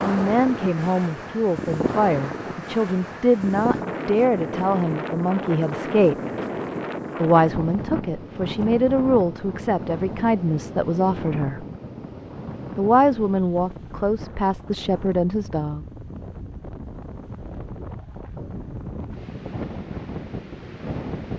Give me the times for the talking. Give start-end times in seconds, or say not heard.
0.0-6.2, 7.2-11.7, 12.8-15.8.